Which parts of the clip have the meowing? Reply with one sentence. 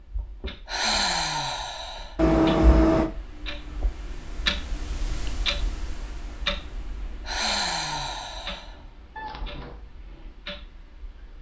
The meowing can be heard from 2.1 to 3.1 s and from 9.2 to 9.8 s.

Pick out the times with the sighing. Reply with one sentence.
You can hear the sighing from 0.7 to 2.1 s and from 7.2 to 8.8 s.